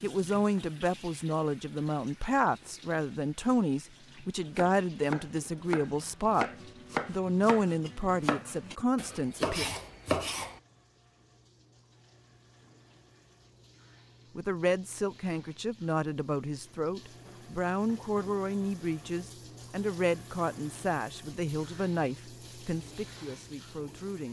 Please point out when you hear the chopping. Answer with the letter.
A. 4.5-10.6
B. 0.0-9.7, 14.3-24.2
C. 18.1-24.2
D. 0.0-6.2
A.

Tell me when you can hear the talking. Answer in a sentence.
The talking can be heard from 0.0 to 9.7 s and from 14.3 to 24.2 s.